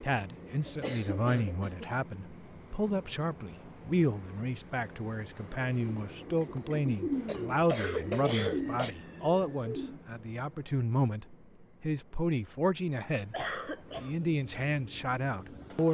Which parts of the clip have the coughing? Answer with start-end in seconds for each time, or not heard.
0.7-1.9, 7.2-8.9, 13.3-14.2.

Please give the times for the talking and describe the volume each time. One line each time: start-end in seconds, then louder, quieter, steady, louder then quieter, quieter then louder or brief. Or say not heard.
0.0-15.8 steady.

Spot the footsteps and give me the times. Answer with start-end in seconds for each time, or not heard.
not heard.